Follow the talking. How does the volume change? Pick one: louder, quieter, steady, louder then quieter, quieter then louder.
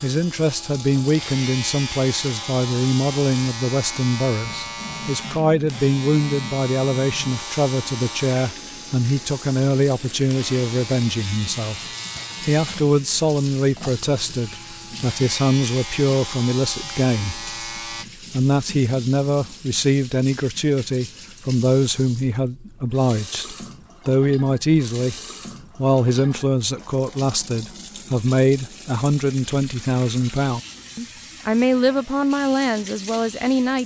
steady.